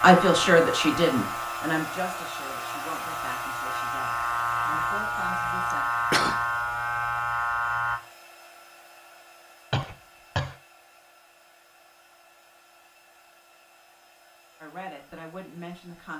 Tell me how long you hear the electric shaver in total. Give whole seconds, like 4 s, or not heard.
8 s.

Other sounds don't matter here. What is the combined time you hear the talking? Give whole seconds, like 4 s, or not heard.
7 s.